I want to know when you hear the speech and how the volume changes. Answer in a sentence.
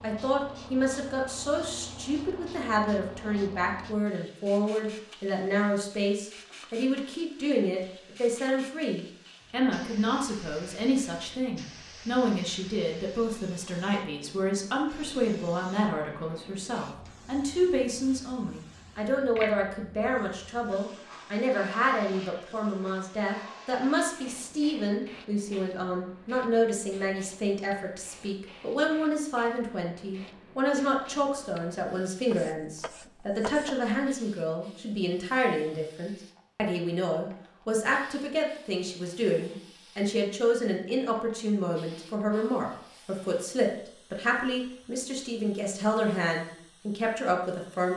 You can hear the speech from 0.0 to 47.9 s, at a steady volume.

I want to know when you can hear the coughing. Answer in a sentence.
The coughing can't be heard in this clip.